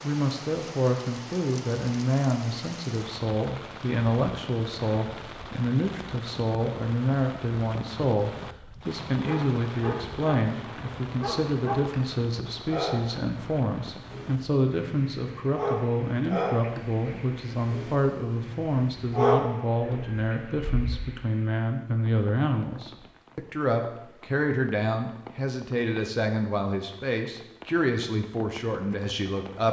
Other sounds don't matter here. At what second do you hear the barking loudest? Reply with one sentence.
The loudest moment of the barking is at 19 seconds.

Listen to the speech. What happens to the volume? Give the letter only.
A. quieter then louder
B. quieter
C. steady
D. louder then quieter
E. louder
C.